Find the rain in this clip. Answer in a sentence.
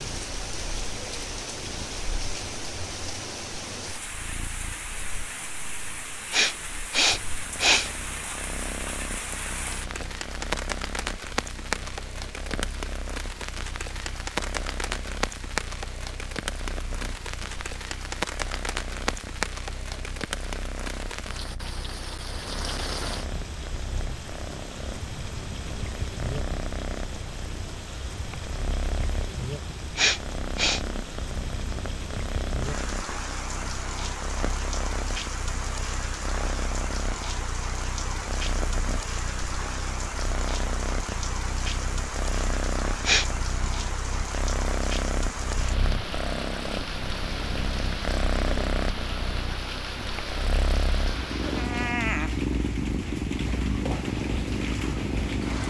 The rain can be heard from 0.0 to 55.6 s.